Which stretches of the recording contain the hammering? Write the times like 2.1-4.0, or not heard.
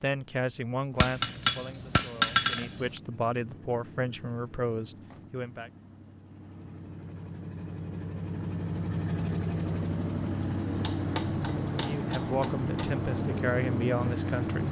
1.0-3.0, 10.7-13.1.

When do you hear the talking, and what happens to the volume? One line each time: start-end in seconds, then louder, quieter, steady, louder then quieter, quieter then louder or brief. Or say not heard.
0.0-5.7 quieter then louder
11.8-14.6 brief.